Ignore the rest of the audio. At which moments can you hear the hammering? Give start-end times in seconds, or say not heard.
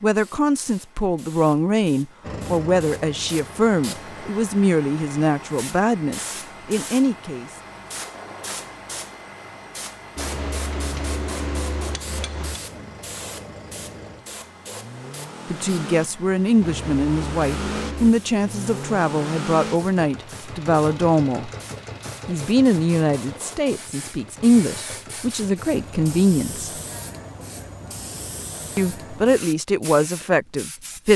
10.2-12.6, 16.6-18.1.